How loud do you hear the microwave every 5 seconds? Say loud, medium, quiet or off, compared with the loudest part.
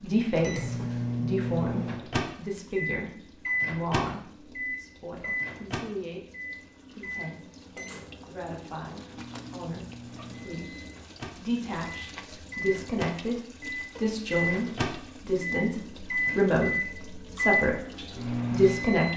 loud, medium, medium, loud.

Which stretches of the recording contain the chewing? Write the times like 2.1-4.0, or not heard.
not heard.